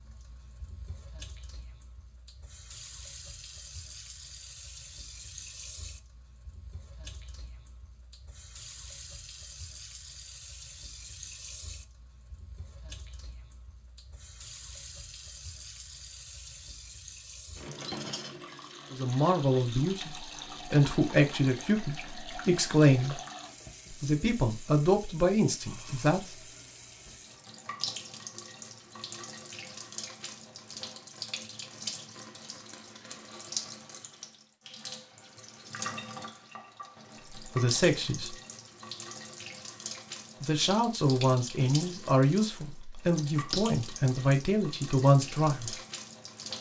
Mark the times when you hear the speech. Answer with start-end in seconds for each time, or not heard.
18.9-23.2, 23.9-26.3, 37.4-38.4, 40.4-45.8.